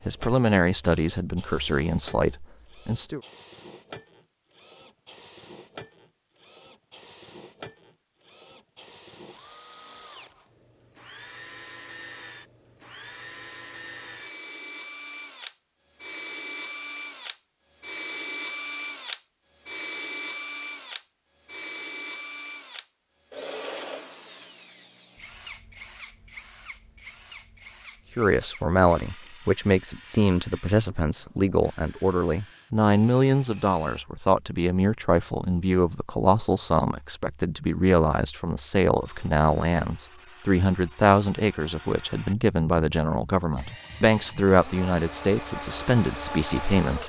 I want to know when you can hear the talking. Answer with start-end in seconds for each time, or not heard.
0.1-3.2, 28.1-47.0.